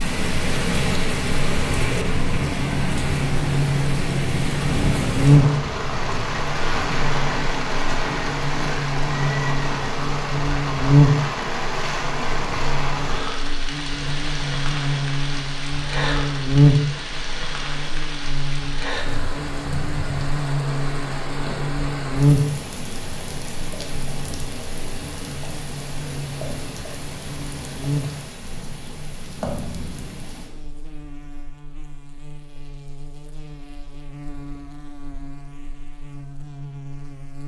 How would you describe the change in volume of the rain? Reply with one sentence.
The volume of the rain goes down.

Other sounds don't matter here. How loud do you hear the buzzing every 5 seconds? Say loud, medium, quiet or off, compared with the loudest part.
medium, loud, loud, loud, loud, medium, quiet, quiet.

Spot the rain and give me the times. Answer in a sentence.
The rain can be heard from 0.0 to 30.5 s.